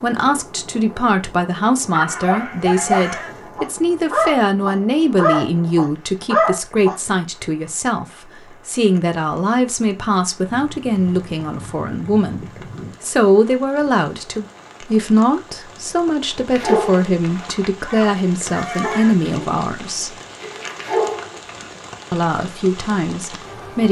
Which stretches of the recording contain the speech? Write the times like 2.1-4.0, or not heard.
0.0-20.1, 22.1-23.8.